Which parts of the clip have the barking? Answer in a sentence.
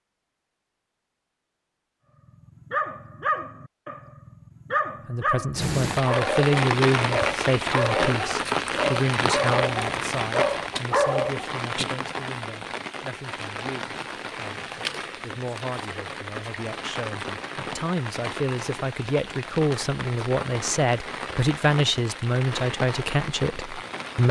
You can hear the barking from 2.6 to 11.4 s.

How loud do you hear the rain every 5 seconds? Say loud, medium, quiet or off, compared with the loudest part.
off, loud, medium, medium, medium.